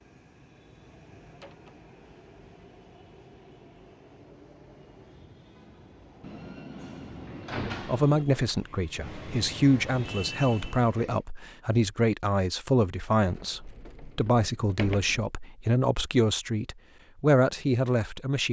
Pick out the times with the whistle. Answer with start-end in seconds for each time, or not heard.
not heard.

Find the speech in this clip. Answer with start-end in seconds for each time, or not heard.
7.8-18.4.